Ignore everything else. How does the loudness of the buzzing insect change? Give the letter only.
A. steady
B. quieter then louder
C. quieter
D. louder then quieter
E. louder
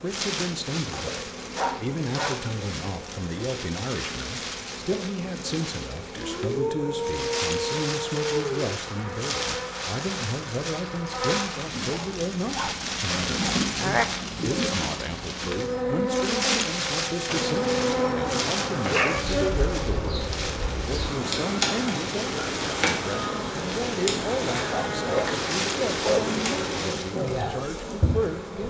E.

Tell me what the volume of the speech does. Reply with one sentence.
The loudness of the speech stays about the same.